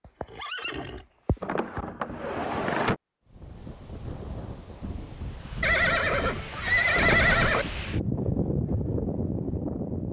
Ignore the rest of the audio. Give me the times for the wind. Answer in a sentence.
The wind can be heard from 3.2 to 10.0 s.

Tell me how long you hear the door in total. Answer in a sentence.
The door can be heard for 2 seconds in total.